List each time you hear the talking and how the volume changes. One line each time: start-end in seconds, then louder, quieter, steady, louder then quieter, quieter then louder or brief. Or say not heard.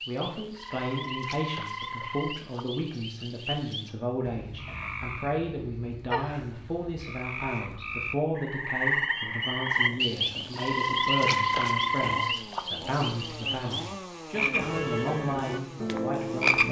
0.1-16.6 steady.